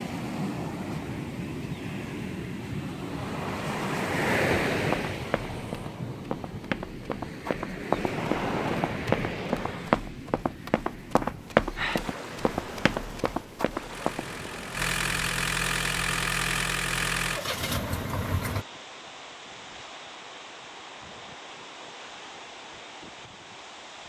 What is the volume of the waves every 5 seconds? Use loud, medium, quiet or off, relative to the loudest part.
loud, loud, medium, quiet, quiet.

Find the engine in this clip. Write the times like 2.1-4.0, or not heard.
13.9-18.6.